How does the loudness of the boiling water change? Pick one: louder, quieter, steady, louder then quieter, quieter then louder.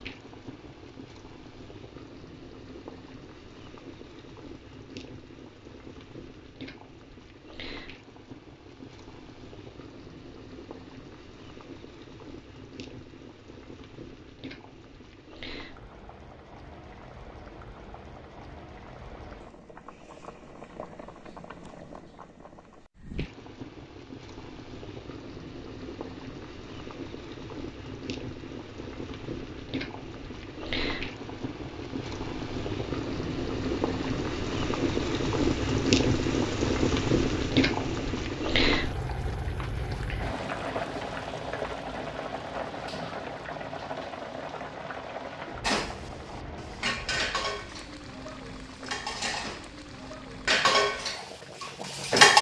louder then quieter.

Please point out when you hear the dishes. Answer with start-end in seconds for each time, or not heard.
45.6-52.3.